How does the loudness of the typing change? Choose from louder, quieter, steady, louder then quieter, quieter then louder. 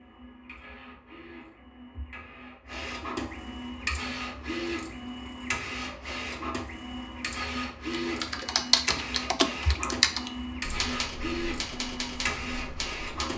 quieter.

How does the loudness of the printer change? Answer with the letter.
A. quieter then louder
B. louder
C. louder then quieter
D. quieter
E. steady
B.